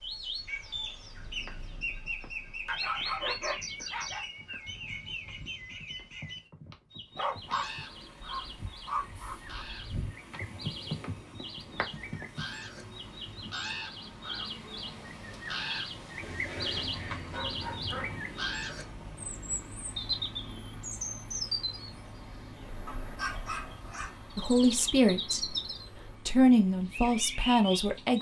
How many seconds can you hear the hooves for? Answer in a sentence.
You can hear the hooves for 11 seconds altogether.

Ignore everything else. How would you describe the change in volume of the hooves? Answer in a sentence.
The volume of the hooves goes up.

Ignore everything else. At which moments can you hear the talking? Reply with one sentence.
You can hear the talking from 24.4 to 25.6 s and from 26.2 to 28.1 s.